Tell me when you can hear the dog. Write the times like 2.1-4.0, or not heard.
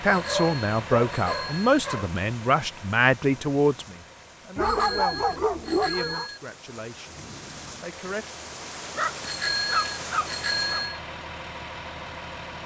0.1-2.1, 4.5-6.3, 8.9-10.8.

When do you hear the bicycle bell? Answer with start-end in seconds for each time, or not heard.
0.2-1.7, 4.6-6.4, 9.2-11.0.